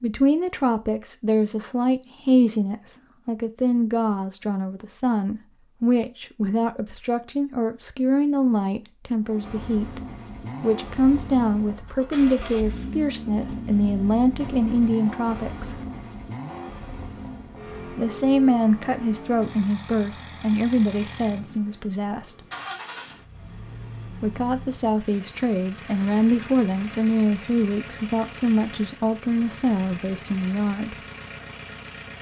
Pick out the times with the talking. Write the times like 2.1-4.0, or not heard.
0.0-10.0, 10.6-15.8, 17.9-22.4, 24.2-30.9.